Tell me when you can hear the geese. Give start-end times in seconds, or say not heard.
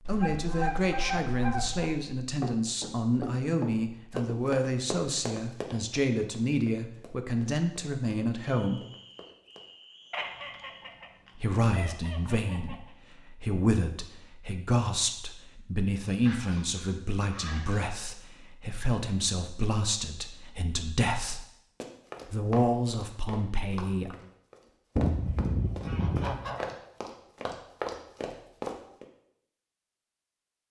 0.1-2.0, 10.1-12.8, 16.2-17.9, 24.9-26.6.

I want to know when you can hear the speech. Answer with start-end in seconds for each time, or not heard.
0.1-8.8, 11.3-21.4, 22.2-24.1.